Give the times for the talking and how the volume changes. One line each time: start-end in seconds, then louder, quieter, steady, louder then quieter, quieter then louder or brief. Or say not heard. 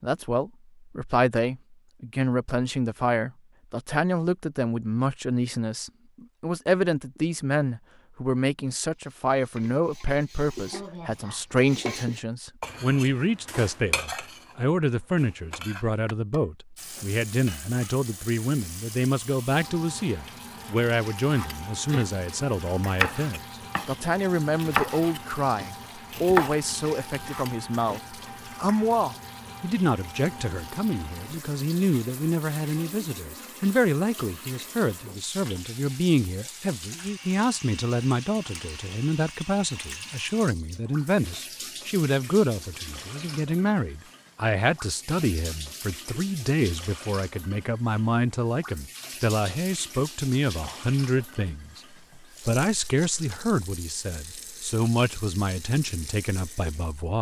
0.0-57.1 steady.